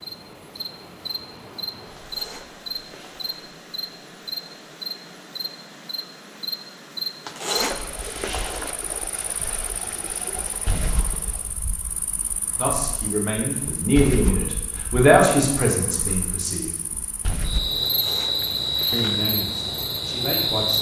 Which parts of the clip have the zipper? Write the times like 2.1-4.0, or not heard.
1.9-3.5, 7.2-8.8, 17.8-19.1.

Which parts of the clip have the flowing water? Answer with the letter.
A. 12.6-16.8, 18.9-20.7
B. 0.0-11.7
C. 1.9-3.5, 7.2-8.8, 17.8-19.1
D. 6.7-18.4
B.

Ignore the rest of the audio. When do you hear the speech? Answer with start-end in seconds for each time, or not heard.
12.6-16.8, 18.9-20.7.